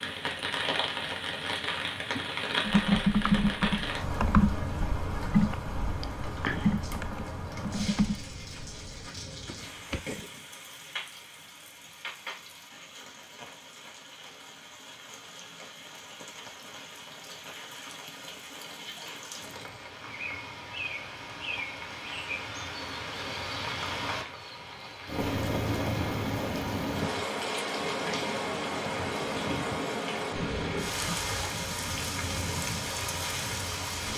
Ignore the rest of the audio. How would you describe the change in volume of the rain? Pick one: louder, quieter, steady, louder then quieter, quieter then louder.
quieter then louder.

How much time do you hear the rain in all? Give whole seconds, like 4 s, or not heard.
34 s.